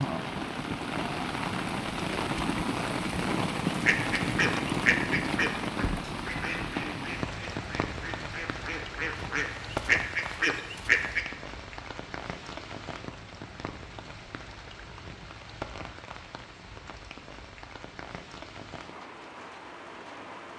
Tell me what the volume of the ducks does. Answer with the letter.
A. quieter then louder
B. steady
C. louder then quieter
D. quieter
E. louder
A.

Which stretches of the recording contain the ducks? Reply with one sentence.
The ducks can be heard from 3.6 to 11.2 s.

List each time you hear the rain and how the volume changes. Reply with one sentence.
The rain can be heard from 0.0 to 20.5 s, getting quieter.